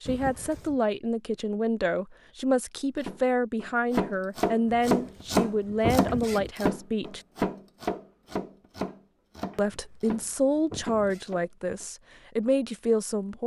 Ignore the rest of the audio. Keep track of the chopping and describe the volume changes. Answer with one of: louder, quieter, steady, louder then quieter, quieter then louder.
quieter.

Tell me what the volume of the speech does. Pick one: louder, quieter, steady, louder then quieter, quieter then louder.
steady.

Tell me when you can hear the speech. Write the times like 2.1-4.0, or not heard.
0.0-7.2, 9.6-13.4.